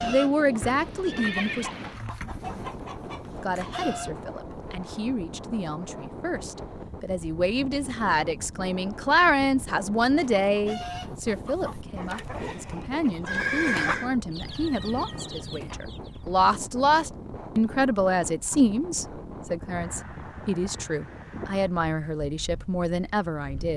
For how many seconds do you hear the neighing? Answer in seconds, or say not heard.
2 s.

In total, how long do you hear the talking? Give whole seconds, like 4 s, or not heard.
22 s.